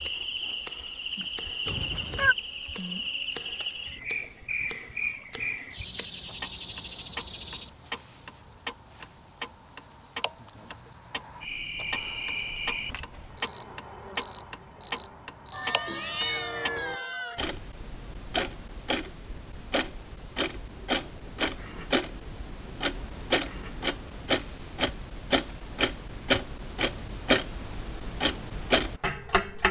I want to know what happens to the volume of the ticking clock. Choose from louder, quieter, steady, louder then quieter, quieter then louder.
louder.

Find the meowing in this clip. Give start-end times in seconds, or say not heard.
1.6-2.4, 15.5-17.6.